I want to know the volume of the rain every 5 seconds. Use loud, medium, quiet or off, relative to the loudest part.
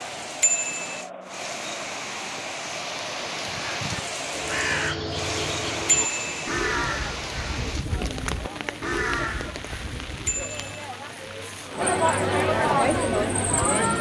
loud, loud, medium.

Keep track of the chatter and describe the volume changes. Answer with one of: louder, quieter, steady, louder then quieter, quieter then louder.
louder.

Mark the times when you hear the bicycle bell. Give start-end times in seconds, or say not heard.
0.4-1.0, 5.8-6.3, 10.2-10.8.